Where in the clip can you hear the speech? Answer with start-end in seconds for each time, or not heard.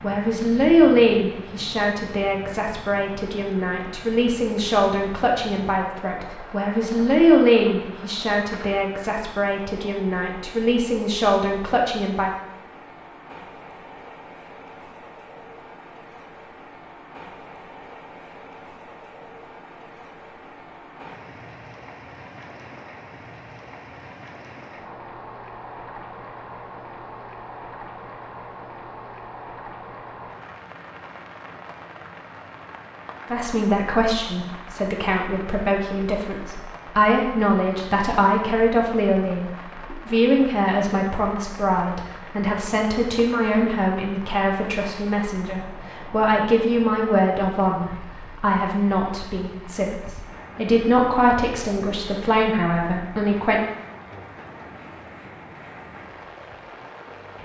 0.0-12.3, 33.3-53.6.